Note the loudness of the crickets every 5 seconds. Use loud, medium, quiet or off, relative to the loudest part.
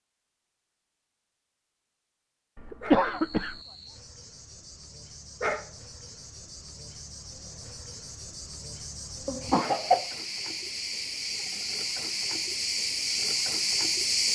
quiet, quiet, loud.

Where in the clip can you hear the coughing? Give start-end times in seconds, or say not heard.
2.6-3.5, 9.2-10.2.